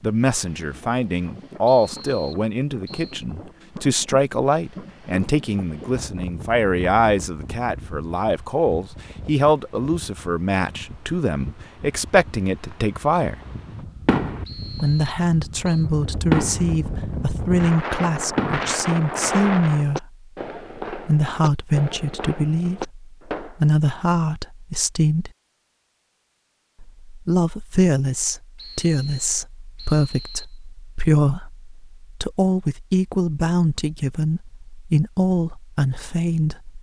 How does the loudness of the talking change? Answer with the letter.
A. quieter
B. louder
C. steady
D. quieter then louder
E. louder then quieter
C.